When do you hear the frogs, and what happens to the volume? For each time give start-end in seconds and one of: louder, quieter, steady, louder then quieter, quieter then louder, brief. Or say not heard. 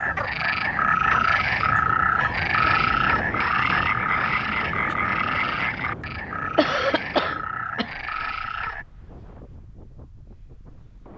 0.0-8.8 quieter.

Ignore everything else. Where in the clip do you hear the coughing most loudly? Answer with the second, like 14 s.
7 s.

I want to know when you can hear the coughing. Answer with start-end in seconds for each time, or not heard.
1.6-2.4, 6.5-7.9.